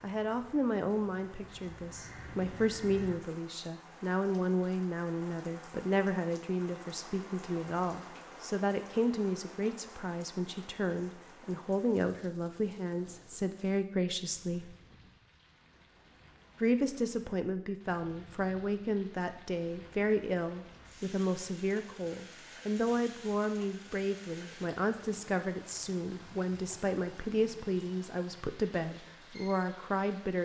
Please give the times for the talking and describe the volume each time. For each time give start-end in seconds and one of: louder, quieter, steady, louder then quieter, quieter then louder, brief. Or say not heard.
0.0-14.8 steady
16.6-30.4 steady.